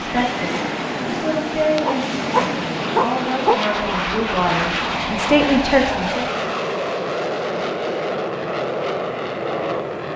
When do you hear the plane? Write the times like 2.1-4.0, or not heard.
0.0-10.1.